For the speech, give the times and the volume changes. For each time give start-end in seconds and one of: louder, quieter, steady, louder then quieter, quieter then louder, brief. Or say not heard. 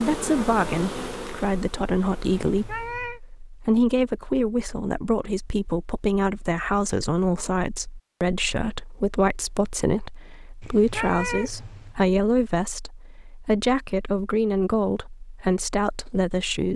0.0-16.7 steady.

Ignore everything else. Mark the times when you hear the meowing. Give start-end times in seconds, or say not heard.
2.5-3.2, 10.6-12.0.